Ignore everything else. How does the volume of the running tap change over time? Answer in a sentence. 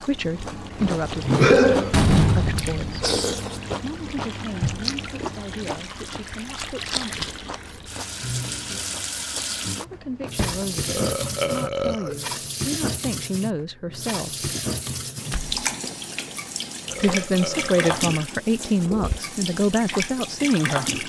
The volume of the running tap goes up.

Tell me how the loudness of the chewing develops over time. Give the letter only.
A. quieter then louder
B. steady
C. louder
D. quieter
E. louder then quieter
D.